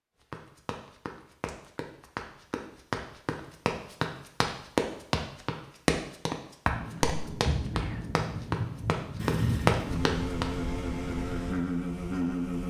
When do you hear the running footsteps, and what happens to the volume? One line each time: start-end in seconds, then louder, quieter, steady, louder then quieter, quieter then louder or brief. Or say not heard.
0.3-10.5 louder.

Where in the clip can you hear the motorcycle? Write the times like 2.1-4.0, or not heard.
9.2-12.6.